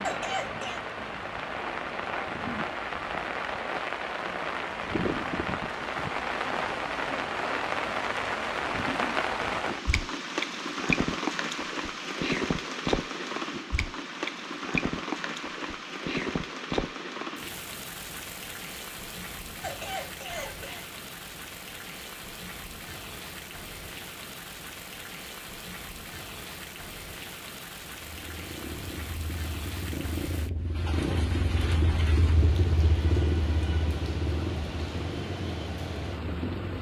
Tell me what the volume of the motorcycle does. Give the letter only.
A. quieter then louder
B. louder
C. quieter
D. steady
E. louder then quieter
E.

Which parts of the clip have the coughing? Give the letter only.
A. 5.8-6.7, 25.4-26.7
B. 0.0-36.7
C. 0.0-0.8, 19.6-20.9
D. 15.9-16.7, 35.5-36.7
C.